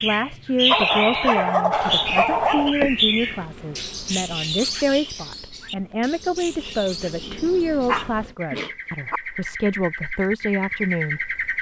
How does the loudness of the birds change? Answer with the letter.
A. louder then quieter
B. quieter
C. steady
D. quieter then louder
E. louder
D.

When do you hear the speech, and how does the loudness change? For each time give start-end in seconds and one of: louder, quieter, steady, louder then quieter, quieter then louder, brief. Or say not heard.
0.0-11.4 steady.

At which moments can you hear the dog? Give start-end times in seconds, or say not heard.
0.7-2.8, 7.2-9.2.